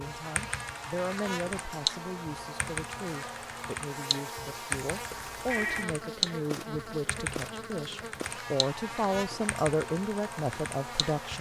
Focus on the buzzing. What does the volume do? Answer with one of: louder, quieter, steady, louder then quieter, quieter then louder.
steady.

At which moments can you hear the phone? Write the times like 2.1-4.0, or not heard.
5.1-5.9.